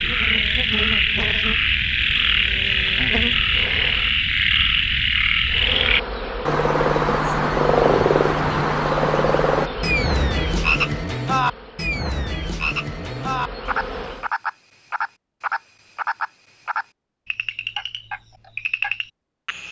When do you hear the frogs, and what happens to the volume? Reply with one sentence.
The frogs can be heard from 0.0 to 19.6 s, getting quieter.